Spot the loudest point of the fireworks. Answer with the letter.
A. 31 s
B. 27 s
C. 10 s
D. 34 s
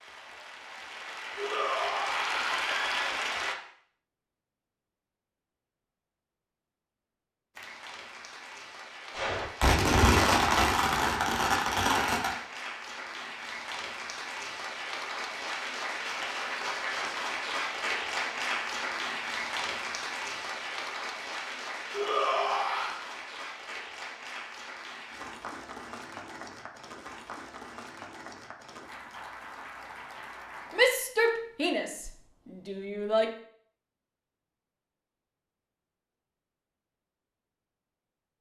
C.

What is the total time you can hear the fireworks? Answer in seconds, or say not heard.
3 s.